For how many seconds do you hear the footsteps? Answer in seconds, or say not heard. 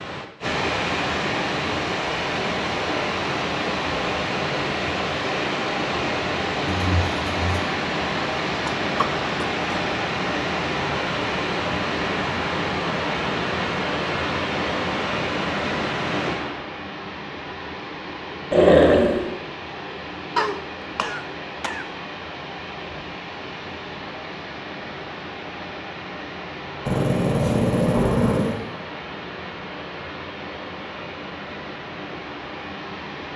not heard.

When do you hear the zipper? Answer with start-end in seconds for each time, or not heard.
not heard.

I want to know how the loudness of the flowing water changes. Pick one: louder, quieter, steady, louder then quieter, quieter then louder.
quieter.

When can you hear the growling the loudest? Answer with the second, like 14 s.
19 s.